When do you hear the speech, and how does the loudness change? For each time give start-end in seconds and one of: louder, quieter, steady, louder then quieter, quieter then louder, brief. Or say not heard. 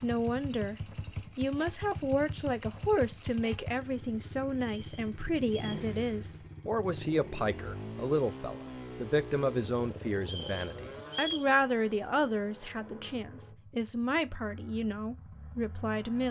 0.0-0.8 brief
1.4-16.2 steady.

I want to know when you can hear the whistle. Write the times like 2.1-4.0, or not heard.
4.5-5.8, 10.2-11.5.